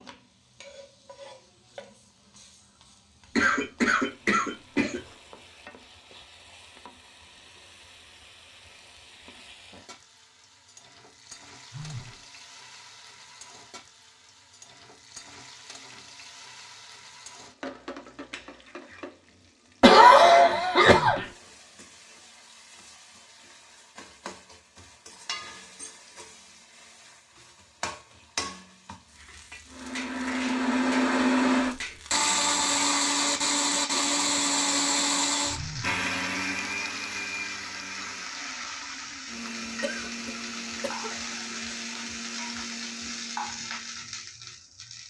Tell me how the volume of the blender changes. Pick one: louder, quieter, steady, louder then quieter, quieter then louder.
quieter.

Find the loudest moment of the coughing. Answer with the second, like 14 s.
20 s.